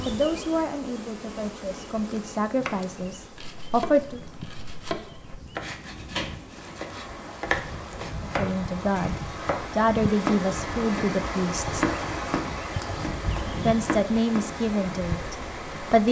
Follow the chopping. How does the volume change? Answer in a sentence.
The loudness of the chopping goes up.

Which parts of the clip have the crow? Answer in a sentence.
You can't hear the crow here.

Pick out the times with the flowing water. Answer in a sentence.
You can hear the flowing water from 6.5 to 16.0 s.